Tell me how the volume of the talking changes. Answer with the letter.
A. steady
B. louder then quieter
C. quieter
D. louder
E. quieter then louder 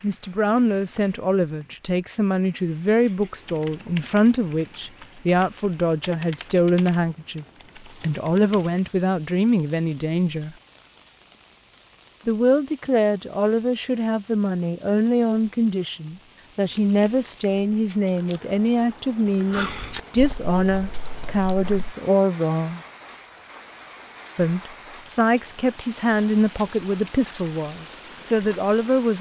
A.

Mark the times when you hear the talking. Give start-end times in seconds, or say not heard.
0.0-10.6, 12.2-22.8, 24.4-29.1.